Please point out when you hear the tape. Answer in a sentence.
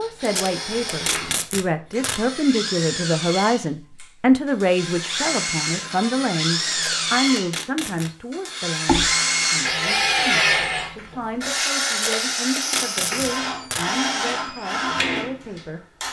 The tape can be heard from 0.2 to 2.2 s, from 6.7 to 8.1 s and from 11.9 to 13.8 s.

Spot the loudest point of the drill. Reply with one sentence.
The loudest moment of the drill is at 10 seconds.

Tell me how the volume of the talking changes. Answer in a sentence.
The loudness of the talking goes down.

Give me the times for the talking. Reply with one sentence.
The talking can be heard from 0.0 to 15.8 s.